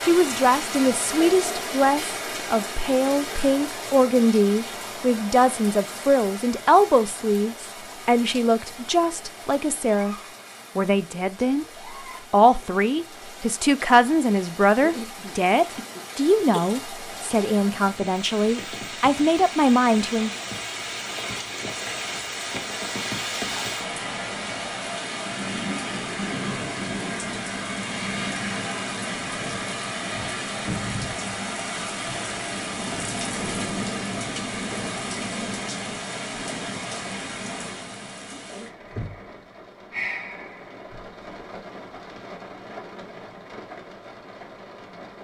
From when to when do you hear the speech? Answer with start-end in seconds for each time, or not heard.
0.0-10.2, 10.8-11.7, 12.3-20.3.